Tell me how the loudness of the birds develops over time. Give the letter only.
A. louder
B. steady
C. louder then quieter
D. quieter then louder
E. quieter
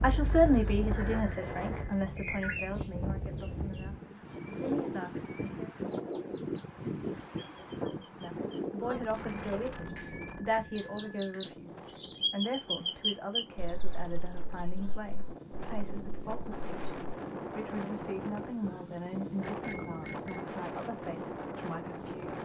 D.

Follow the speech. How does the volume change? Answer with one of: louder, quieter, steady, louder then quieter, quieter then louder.
quieter.